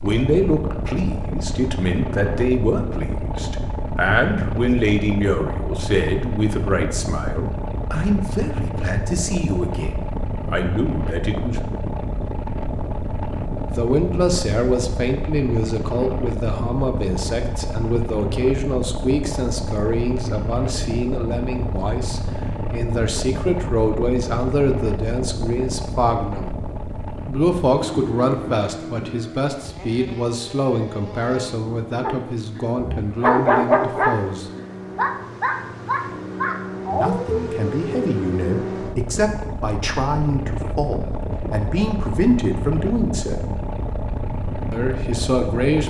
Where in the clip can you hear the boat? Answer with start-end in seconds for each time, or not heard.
0.0-45.8.